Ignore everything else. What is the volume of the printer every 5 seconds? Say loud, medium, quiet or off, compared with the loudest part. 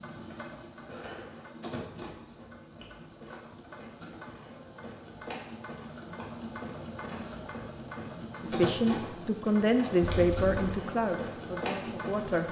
medium, loud, loud.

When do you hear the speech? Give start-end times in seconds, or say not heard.
8.4-12.4.